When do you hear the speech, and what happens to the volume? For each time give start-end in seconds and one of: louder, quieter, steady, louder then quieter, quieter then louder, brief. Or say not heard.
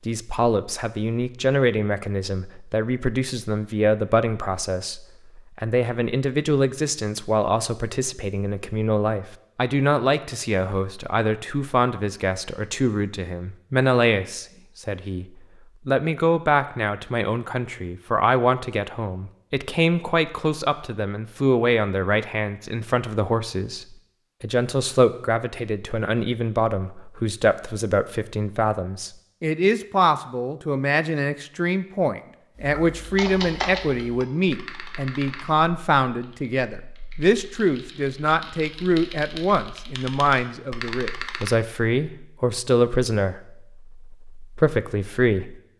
0.1-45.5 steady.